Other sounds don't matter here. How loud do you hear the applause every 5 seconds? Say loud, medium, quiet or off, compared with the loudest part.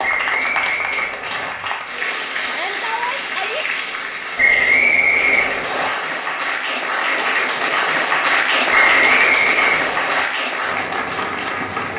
medium, loud, loud.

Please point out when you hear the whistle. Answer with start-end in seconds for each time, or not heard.
0.0-1.6, 4.3-5.9, 8.7-10.2.